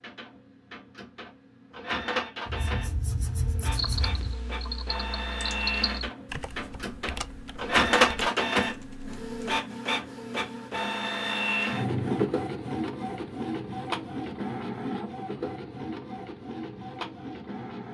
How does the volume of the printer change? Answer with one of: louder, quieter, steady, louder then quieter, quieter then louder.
louder then quieter.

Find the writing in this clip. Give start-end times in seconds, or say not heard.
2.5-4.3.